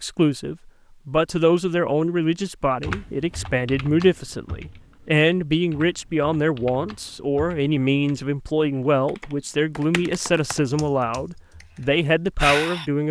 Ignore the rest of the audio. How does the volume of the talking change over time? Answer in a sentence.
The volume of the talking stays about the same.